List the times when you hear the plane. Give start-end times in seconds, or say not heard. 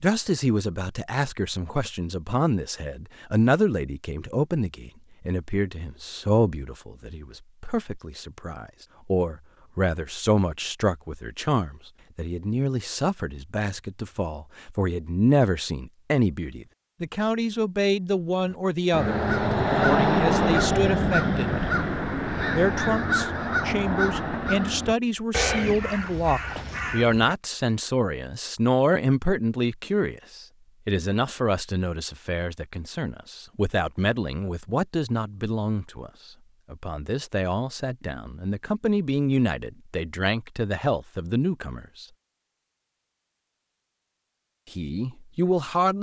not heard.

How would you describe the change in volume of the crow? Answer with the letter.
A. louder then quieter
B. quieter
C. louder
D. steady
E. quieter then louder
B.